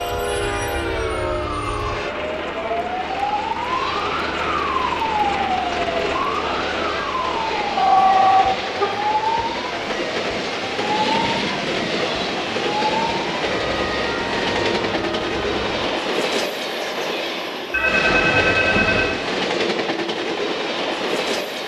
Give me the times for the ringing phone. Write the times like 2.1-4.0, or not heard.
7.8-8.8, 17.7-19.1.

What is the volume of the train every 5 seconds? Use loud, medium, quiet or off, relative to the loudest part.
medium, medium, loud, loud, loud.